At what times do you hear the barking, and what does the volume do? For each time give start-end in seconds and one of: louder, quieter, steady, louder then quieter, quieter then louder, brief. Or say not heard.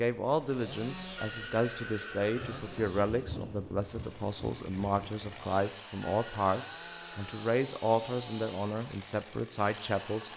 not heard.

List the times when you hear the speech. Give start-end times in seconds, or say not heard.
0.0-10.3.